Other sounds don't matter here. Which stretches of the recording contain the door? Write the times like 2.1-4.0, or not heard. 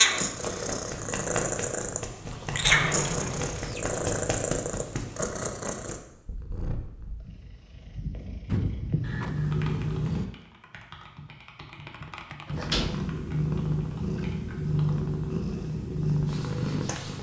2.2-4.0, 8.4-9.6, 12.7-13.2.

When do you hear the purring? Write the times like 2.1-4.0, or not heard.
0.0-10.2, 12.5-17.1.